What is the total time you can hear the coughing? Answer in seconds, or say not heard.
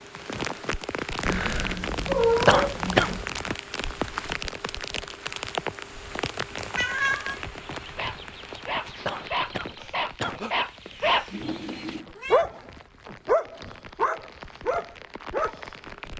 2 s.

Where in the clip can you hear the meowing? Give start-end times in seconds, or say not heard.
1.2-3.2, 6.8-7.4, 11.3-12.4.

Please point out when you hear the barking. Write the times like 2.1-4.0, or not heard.
7.8-16.1.